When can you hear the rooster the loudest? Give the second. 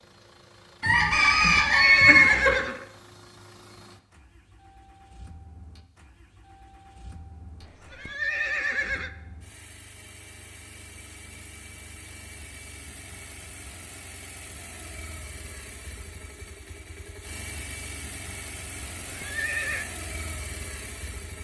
2 s.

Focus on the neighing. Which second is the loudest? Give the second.
2 s.